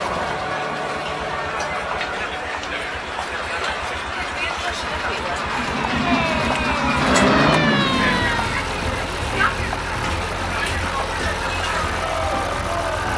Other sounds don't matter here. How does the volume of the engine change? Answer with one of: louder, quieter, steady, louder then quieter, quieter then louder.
louder.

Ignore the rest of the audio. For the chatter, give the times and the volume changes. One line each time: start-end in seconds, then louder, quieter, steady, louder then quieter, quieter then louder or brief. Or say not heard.
0.0-13.1 steady.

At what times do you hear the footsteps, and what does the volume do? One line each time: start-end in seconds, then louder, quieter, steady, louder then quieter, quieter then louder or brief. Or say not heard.
not heard.